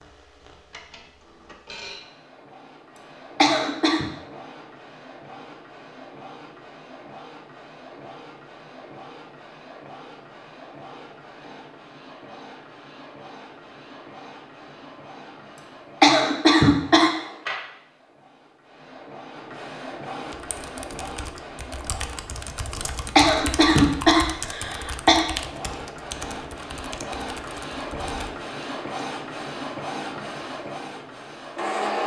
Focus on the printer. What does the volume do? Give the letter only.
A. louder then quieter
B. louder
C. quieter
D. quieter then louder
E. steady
B.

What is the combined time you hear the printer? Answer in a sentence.
You can hear the printer for 32 seconds altogether.